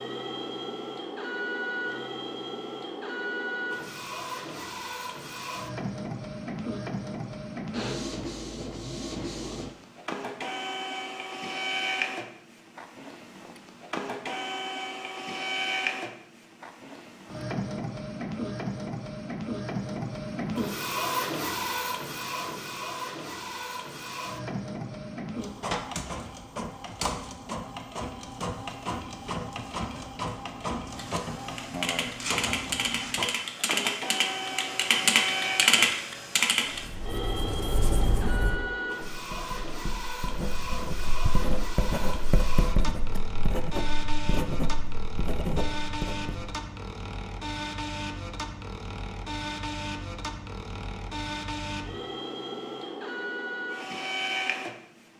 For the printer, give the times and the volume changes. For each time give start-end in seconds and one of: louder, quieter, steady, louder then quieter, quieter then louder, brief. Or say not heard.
0.0-55.1 steady.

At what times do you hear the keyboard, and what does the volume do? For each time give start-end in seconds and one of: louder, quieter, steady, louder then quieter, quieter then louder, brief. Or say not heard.
30.9-36.9 louder.